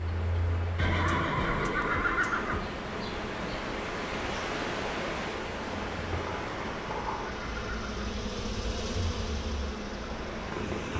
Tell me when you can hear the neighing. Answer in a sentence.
You can hear the neighing from 0.8 to 2.8 s and from 6.4 to 8.0 s.